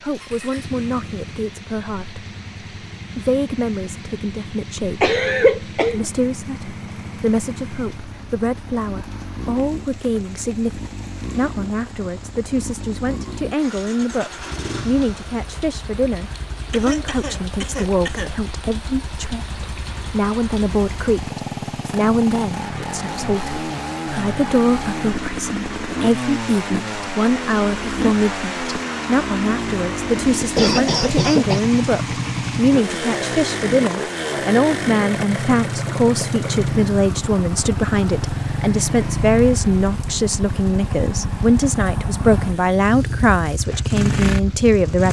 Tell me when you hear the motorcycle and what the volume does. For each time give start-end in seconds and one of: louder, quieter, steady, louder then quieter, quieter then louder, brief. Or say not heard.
0.0-45.0 louder.